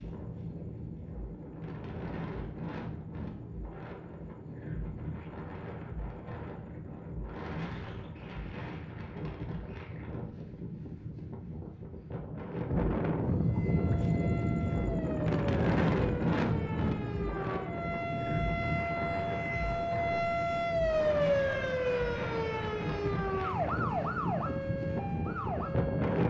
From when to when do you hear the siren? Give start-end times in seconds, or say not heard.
13.3-26.2.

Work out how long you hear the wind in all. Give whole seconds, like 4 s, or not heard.
26 s.